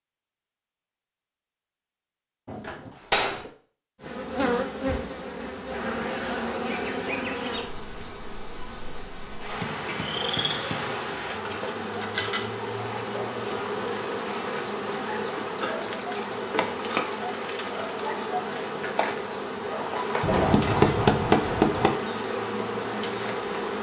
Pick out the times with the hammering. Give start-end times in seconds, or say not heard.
2.5-3.5, 9.2-11.1, 20.2-21.9.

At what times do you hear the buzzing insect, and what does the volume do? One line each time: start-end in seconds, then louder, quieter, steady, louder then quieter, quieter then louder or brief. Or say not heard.
4.0-23.7 steady.